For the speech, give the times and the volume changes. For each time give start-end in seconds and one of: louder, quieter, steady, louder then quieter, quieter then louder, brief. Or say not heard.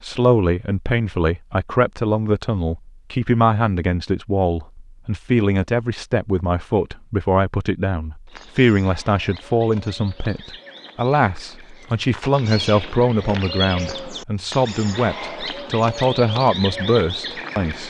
0.0-17.8 steady.